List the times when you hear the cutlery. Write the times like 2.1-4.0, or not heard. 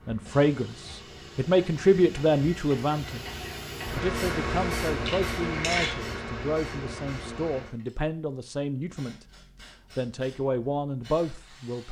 5.0-6.0.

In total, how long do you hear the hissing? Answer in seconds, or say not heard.
12 s.